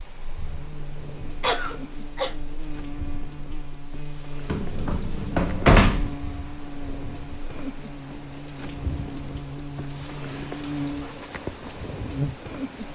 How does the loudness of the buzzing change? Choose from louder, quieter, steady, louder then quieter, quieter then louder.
louder.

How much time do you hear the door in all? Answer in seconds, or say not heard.
2 s.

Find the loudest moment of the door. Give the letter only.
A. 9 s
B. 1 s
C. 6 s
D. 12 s
C.